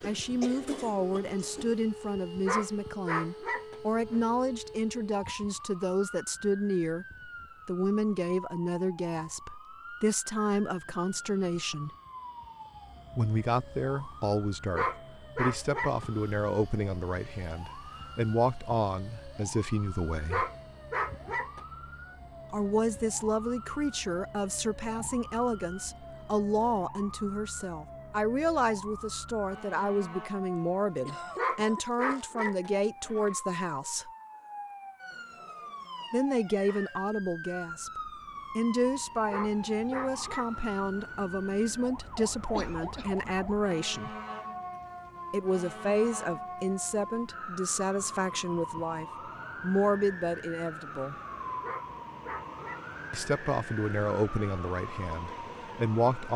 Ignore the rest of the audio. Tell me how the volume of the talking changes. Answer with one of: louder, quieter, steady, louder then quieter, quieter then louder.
steady.